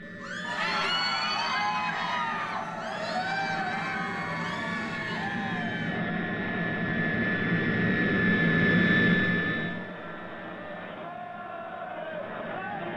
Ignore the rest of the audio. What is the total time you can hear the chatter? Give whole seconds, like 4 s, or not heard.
13 s.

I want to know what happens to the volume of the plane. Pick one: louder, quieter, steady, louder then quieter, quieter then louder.
louder then quieter.